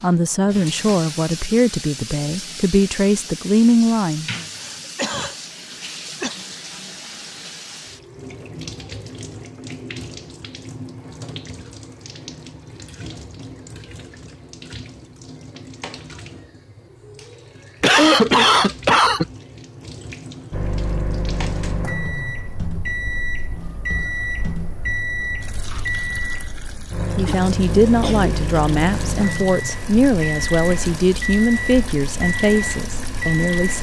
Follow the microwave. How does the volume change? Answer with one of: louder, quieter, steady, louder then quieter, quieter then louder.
steady.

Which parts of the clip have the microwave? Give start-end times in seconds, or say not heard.
20.5-33.7.